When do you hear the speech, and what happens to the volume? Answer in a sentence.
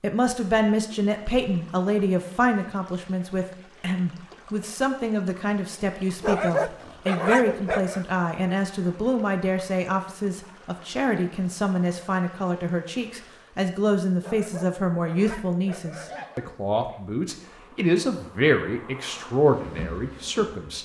You can hear the speech from 0.0 to 20.8 s, at a steady volume.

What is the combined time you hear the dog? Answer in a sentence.
You can hear the dog for 4 seconds altogether.